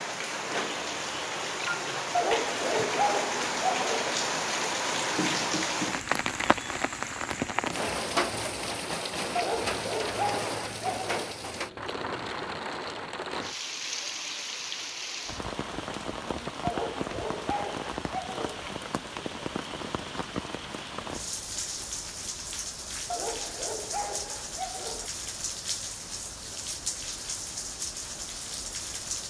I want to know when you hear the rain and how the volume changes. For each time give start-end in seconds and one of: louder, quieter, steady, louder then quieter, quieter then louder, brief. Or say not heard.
0.0-29.2 quieter.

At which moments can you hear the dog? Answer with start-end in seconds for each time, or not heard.
2.1-4.2, 9.3-11.3, 16.6-18.6, 23.1-25.1.